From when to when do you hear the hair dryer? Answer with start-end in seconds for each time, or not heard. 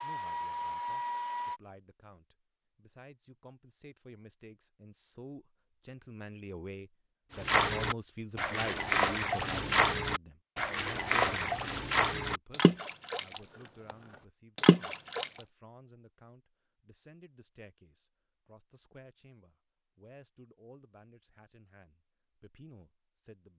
0.0-1.6.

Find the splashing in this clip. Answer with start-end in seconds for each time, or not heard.
7.3-13.9, 14.6-15.4.